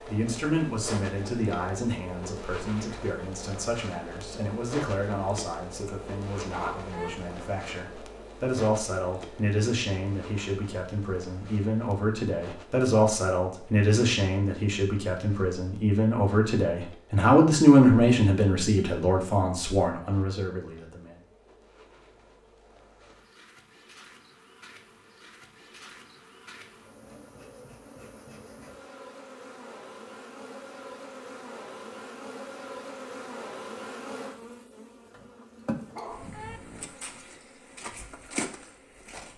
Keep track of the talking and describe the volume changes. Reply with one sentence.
The volume of the talking goes up.